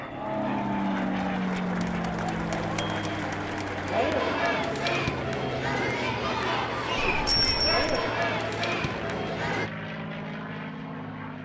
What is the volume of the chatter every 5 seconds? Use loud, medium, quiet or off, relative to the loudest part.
loud, loud, off.